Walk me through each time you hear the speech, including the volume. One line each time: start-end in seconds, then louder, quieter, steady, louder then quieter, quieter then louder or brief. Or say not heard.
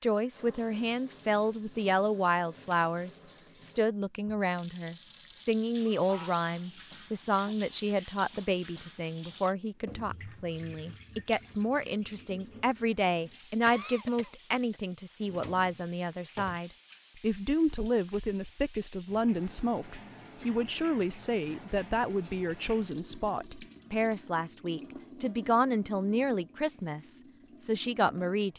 0.0-28.5 steady.